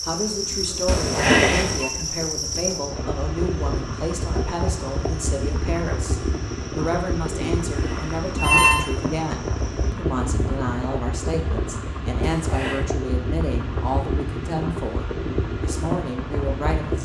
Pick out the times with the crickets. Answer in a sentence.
The crickets can be heard from 0.0 to 9.9 s.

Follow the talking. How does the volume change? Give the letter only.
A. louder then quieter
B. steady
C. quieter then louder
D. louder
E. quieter
B.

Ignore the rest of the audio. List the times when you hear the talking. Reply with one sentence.
The talking can be heard from 0.1 to 16.9 s.